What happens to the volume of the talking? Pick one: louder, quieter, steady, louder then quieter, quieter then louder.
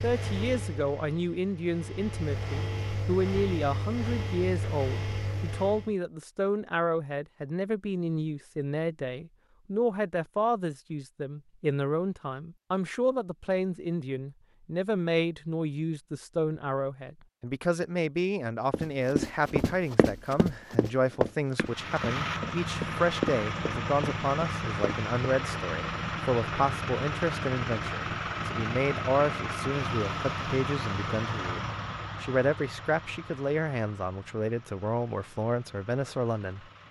steady.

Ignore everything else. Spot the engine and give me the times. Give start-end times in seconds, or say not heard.
0.0-6.0, 21.6-36.8.